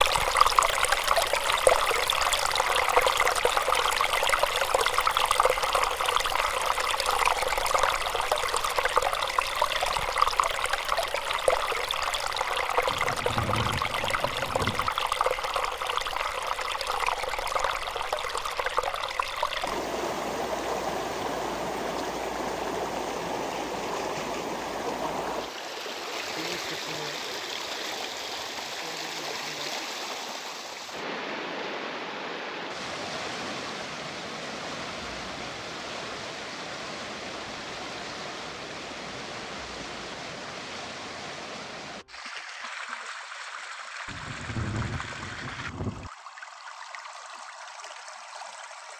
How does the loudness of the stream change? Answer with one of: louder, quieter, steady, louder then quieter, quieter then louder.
quieter.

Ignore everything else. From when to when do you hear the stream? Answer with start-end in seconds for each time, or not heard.
0.0-48.9.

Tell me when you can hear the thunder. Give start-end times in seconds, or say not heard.
12.8-14.9, 44.0-46.1.